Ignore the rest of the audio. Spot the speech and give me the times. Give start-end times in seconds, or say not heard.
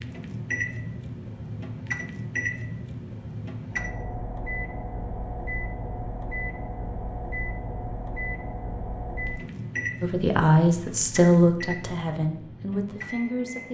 10.0-13.6.